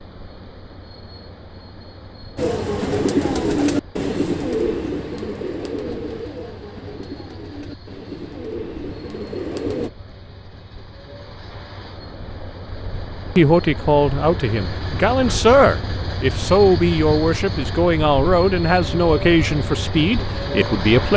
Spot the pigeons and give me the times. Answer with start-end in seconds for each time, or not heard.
2.4-9.9.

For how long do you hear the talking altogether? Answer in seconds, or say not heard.
8 s.